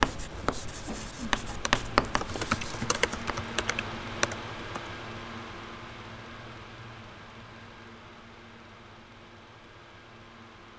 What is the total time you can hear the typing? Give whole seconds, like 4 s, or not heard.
3 s.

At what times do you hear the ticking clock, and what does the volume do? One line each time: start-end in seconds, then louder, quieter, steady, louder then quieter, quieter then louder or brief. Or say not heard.
not heard.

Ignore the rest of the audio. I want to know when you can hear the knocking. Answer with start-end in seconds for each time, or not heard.
not heard.